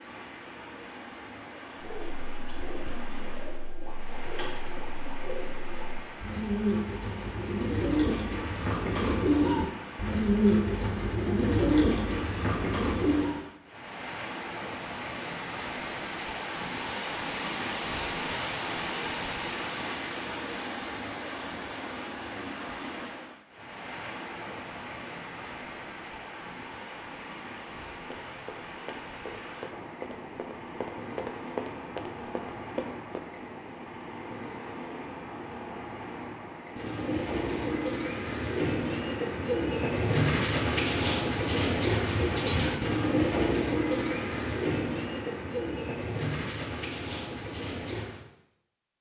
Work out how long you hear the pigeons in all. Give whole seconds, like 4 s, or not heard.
23 s.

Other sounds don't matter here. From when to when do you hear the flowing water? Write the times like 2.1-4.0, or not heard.
0.0-37.8.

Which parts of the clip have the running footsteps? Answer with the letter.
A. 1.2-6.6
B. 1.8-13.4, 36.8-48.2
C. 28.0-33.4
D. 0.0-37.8
C.